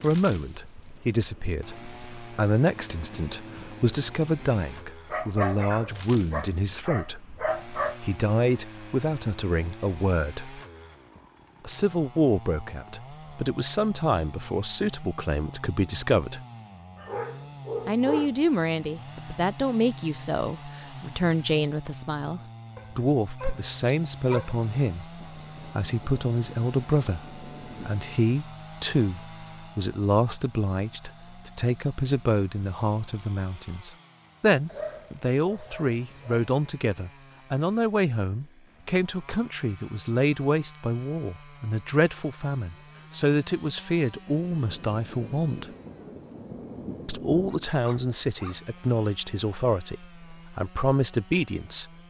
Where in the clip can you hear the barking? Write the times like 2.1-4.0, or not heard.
5.1-8.0, 16.9-18.4, 22.8-25.1, 34.6-36.5, 47.6-48.8.